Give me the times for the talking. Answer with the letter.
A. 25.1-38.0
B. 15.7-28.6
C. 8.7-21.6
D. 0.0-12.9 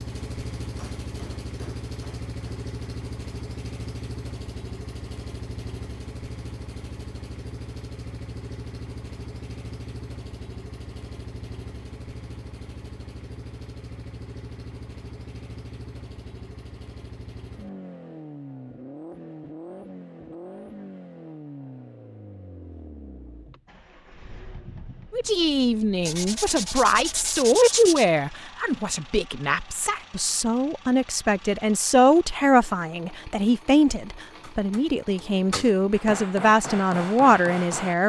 A.